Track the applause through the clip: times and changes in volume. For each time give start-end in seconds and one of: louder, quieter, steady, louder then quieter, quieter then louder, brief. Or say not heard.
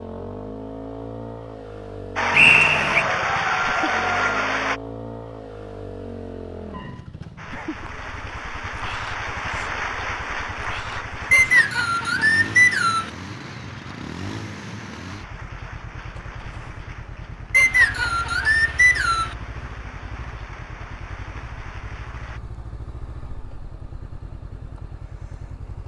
2.1-4.8 brief
7.3-22.4 quieter.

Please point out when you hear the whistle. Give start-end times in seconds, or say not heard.
2.3-3.0, 11.3-13.1, 17.5-19.4.